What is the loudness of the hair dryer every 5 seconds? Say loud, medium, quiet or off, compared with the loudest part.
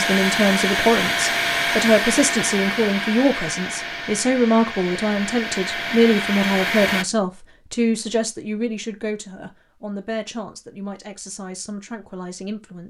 loud, loud, off.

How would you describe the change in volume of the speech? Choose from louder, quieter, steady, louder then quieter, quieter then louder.
quieter.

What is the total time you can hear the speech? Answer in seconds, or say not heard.
13 s.